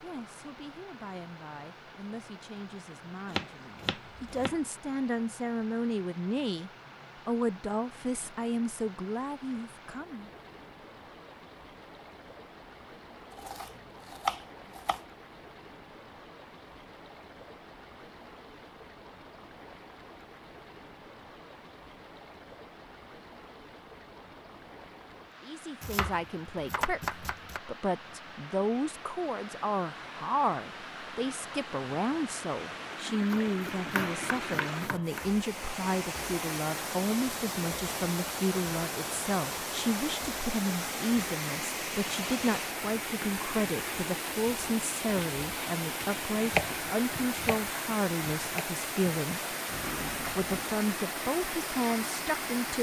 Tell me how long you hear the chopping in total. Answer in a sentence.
The chopping can be heard for 9 seconds in total.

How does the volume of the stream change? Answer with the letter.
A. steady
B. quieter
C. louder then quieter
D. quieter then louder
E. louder
E.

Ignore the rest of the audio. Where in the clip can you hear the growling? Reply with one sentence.
The growling can be heard from 49.6 to 50.7 s.